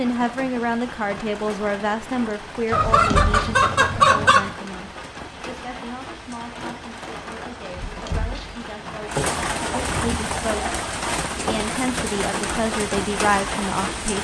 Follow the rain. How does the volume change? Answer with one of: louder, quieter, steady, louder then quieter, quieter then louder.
louder.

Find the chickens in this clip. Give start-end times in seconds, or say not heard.
2.7-4.5, 9.2-10.9.